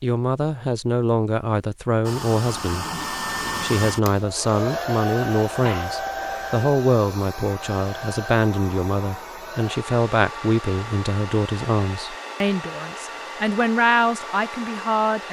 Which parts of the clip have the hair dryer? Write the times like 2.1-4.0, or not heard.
2.0-15.2.